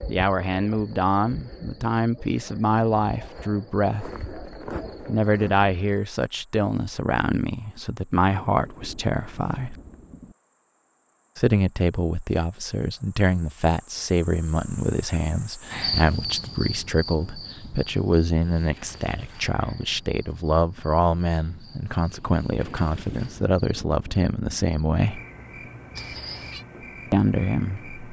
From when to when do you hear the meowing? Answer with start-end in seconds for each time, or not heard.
25.9-26.6.